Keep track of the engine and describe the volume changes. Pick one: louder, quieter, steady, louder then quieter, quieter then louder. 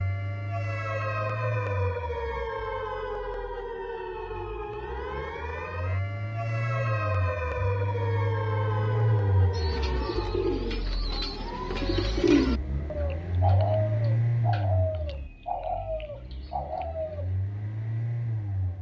louder then quieter.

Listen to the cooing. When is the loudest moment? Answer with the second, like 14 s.
12 s.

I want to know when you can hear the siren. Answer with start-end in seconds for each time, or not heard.
0.0-10.8.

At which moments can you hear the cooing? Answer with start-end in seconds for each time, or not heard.
9.5-17.3.